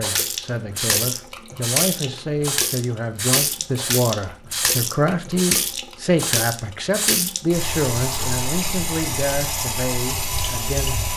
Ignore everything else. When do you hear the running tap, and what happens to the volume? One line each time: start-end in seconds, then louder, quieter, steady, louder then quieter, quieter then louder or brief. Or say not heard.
0.0-11.1 steady.